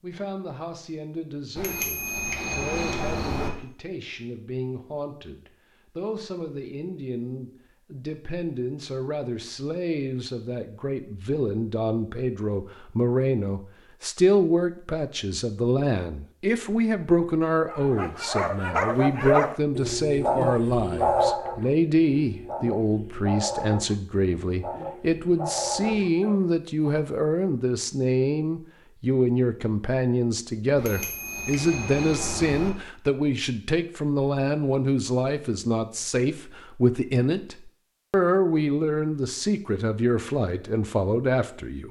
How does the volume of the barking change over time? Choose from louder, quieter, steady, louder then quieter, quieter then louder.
quieter.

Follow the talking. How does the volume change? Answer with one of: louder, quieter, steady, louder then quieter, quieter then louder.
louder.